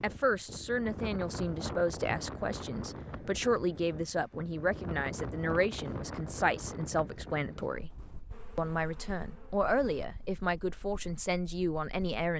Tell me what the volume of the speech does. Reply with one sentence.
The volume of the speech stays about the same.